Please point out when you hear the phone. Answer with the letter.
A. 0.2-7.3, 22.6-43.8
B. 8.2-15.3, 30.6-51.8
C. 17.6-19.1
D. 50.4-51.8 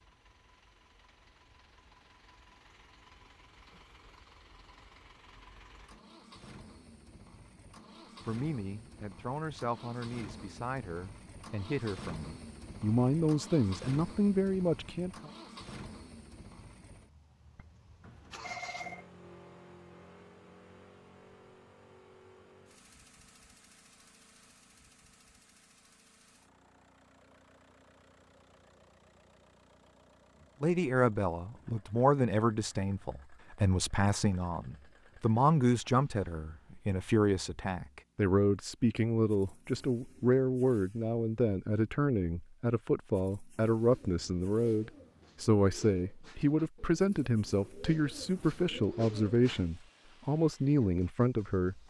C.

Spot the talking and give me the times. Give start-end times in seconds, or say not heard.
8.2-15.3, 30.6-51.8.